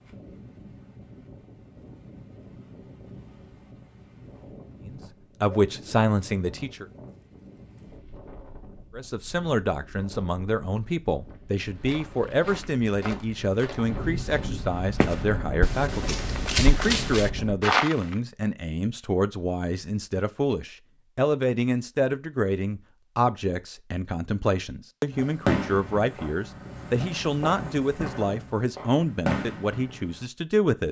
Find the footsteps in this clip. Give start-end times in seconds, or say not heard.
11.7-18.1.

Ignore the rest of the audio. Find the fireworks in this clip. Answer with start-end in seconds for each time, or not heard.
25.1-30.2.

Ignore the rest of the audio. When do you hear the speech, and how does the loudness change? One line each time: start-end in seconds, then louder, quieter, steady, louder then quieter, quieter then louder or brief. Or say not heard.
4.8-6.8 brief
8.9-30.8 steady.